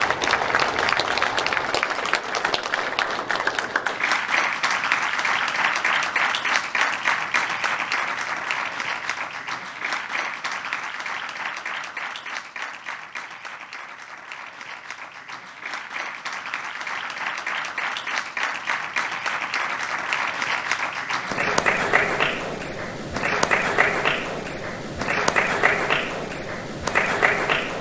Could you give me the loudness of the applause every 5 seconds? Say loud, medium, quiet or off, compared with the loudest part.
loud, loud, medium, medium, loud, loud.